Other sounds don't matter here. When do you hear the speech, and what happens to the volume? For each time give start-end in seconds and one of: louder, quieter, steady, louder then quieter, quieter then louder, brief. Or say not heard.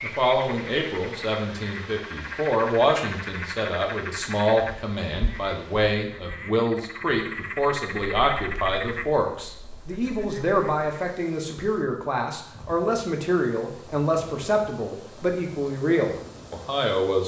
0.0-17.2 steady.